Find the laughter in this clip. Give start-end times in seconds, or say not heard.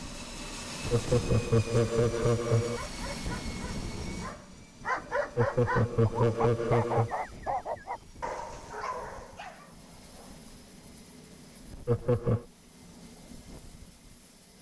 0.9-2.8, 5.3-7.1, 11.8-12.4.